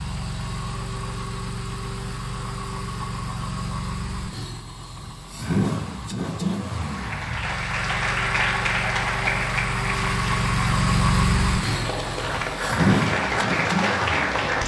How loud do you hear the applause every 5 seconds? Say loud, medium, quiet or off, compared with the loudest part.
off, loud, loud.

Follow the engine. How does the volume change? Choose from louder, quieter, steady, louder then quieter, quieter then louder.
louder.